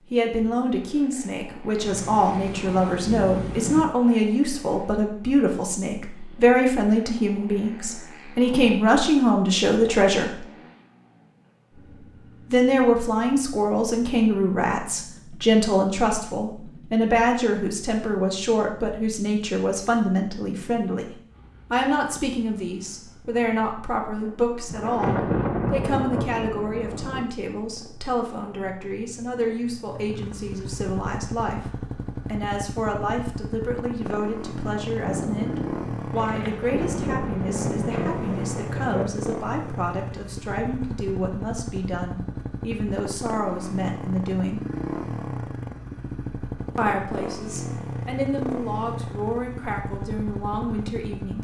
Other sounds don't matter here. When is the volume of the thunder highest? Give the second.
25 s.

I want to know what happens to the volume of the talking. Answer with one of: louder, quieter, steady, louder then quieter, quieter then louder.
quieter.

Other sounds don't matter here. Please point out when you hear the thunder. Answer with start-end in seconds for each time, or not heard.
1.8-3.9, 24.6-27.2, 35.0-39.1.